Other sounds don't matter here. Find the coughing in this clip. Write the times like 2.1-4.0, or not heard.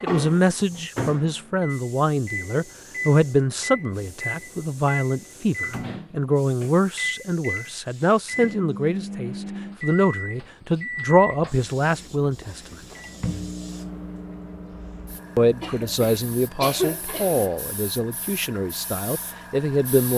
15.6-17.6.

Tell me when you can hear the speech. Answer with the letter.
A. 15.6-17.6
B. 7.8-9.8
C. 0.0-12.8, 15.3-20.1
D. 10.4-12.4
C.